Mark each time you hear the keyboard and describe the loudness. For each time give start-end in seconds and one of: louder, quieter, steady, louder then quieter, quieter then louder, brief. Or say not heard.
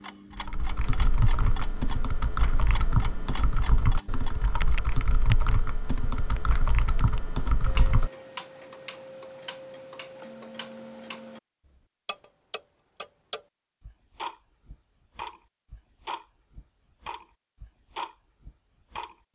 0.3-8.1 steady.